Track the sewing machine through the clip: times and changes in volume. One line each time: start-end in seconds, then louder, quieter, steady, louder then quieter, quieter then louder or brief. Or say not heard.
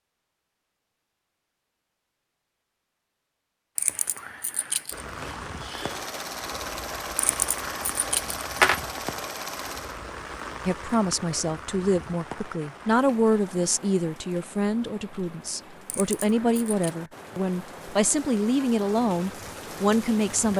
5.1-10.0 steady.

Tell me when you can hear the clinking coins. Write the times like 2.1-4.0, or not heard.
3.8-5.0, 7.3-8.8, 15.8-16.9.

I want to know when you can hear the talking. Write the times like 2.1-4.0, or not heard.
10.7-20.5.